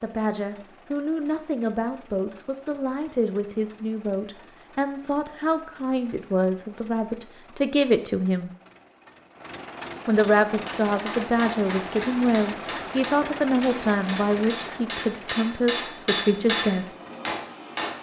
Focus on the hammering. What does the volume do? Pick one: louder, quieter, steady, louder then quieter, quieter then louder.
louder.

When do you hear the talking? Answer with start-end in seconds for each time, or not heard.
0.0-8.5, 10.1-16.9.